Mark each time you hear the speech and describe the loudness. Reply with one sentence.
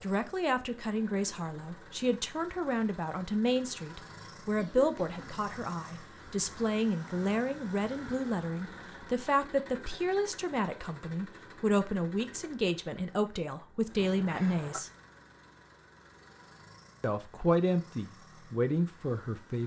The speech can be heard from 0.0 to 14.9 s, at a steady volume; and briefly from 17.0 to 19.6 s.